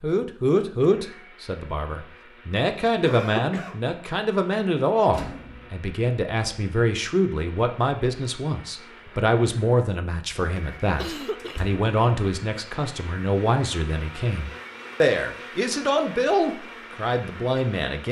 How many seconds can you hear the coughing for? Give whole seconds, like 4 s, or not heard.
2 s.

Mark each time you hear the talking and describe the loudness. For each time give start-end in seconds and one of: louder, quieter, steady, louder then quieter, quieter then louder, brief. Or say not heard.
0.0-18.0 steady.